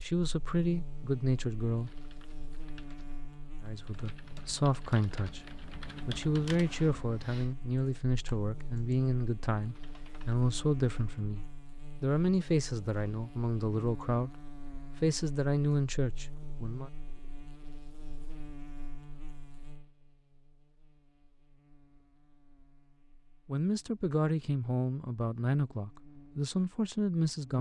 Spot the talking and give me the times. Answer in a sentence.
The talking can be heard from 0.0 to 1.9 s, from 3.6 to 16.9 s and from 23.4 to 27.5 s.